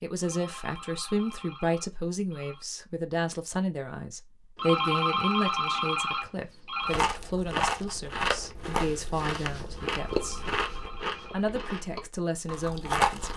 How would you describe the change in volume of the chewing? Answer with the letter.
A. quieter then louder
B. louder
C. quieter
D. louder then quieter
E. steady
C.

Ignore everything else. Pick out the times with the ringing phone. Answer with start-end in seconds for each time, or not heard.
0.2-2.6, 4.5-7.0, 9.9-11.4.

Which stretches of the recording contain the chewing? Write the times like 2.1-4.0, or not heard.
6.8-13.3.